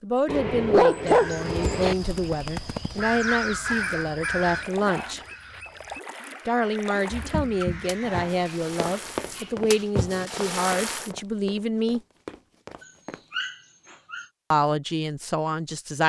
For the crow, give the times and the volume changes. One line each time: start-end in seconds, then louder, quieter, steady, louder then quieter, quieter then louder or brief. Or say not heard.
1.0-8.3 louder then quieter.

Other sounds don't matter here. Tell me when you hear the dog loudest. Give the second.
1 s.